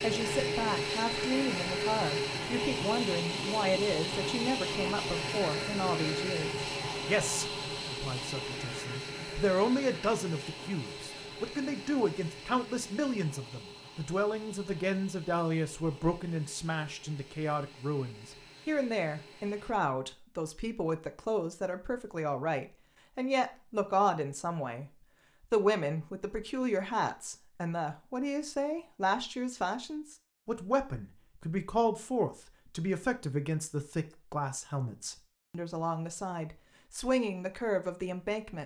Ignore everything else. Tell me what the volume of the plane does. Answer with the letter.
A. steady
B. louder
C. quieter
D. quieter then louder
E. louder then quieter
C.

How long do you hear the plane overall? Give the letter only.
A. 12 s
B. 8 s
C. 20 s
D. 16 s
C.